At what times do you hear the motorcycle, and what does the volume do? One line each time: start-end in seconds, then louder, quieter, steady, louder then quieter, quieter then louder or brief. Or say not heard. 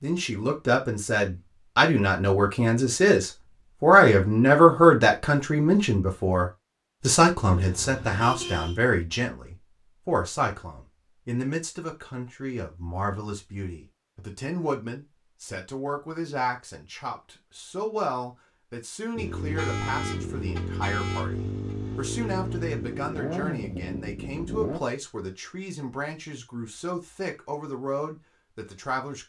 19.1-24.8 steady.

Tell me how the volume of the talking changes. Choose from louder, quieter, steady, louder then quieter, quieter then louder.
quieter.